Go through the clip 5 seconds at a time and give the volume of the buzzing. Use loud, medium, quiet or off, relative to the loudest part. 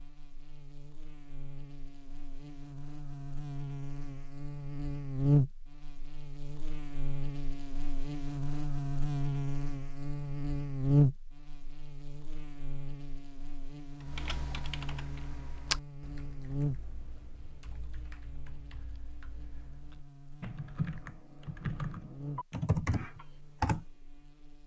medium, loud, loud, medium, quiet.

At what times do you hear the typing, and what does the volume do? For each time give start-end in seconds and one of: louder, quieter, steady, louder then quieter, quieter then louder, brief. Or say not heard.
14.0-23.9 quieter then louder.